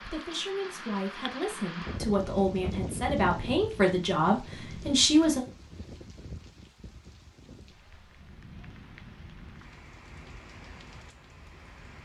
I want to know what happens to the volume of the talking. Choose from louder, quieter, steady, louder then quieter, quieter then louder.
louder.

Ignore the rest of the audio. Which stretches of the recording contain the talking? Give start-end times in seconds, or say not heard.
0.0-5.4.